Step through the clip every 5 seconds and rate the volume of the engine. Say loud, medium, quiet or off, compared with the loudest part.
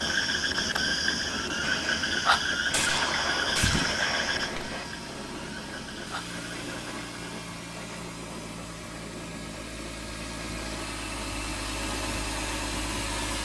medium, medium, loud.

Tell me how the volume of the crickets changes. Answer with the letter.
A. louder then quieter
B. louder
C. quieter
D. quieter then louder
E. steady
C.